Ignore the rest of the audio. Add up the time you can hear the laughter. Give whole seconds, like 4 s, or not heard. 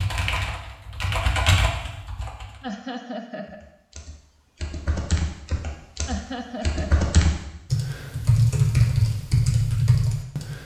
2 s.